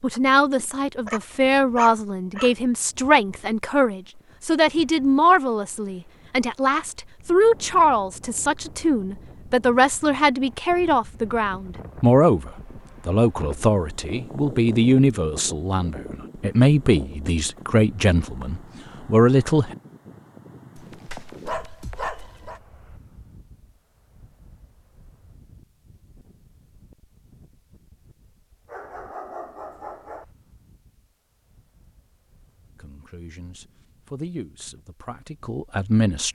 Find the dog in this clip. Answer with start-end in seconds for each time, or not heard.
0.1-2.5, 20.8-22.6, 28.6-30.2.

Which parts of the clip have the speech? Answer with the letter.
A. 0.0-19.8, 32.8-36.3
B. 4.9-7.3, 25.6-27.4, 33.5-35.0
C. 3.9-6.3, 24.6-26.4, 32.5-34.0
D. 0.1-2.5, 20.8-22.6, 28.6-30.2
A.